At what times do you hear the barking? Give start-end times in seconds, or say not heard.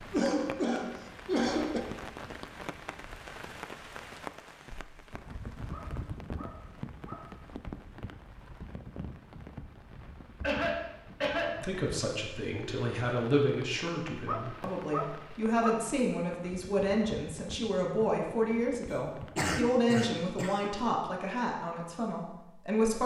5.7-7.3, 14.2-16.6.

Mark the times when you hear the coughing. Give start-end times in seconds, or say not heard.
0.1-1.8, 10.4-11.6, 19.4-20.7.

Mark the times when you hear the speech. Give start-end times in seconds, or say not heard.
11.4-23.0.